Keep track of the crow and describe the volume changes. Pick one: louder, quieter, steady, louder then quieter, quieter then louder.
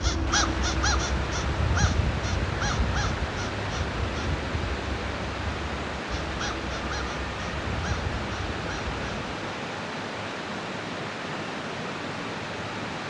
quieter.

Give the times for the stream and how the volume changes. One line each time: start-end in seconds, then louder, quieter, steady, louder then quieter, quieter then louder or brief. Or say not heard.
0.0-13.0 steady.